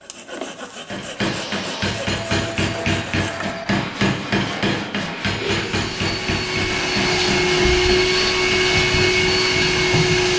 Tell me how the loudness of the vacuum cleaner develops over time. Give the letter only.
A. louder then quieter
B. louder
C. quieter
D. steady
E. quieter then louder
B.